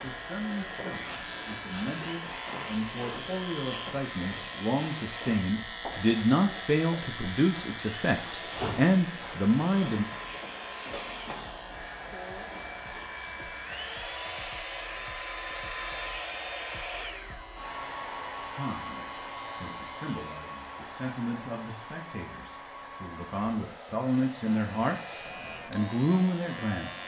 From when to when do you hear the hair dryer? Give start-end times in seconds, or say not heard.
0.0-27.0.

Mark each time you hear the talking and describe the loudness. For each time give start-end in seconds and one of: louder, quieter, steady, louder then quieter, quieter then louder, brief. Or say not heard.
0.0-10.1 louder
18.5-27.0 louder.